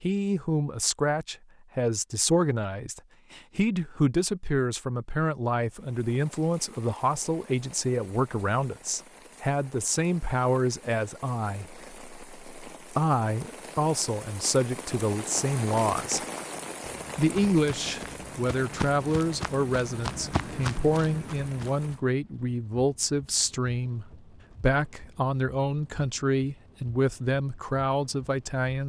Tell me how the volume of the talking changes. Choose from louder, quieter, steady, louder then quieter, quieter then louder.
steady.